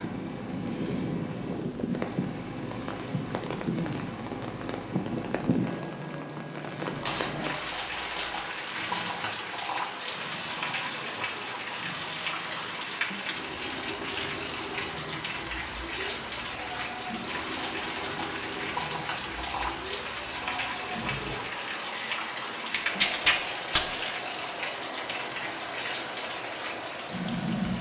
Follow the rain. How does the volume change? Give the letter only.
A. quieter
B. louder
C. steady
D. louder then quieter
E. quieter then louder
C.